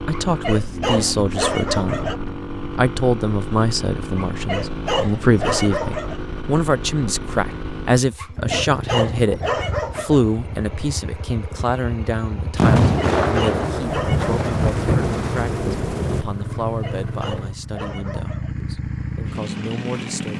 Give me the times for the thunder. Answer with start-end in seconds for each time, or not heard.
12.6-16.2.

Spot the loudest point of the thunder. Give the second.
13 s.